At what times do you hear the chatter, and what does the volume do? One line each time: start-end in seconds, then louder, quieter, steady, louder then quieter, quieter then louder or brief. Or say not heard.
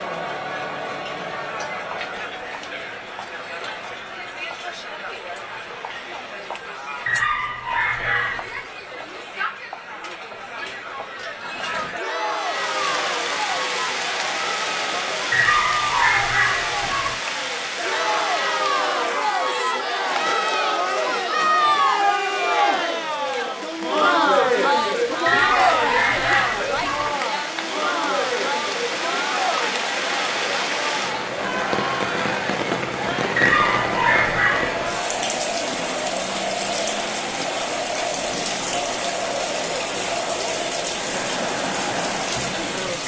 0.0-43.0 louder then quieter.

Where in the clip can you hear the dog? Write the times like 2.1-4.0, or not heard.
7.0-8.6, 15.3-17.2, 25.2-27.1, 33.4-34.9.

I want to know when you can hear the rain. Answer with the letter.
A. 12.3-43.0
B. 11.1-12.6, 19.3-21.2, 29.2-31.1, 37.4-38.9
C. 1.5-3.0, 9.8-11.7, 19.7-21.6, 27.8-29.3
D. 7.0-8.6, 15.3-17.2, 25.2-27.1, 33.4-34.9
A.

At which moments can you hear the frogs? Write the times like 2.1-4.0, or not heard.
not heard.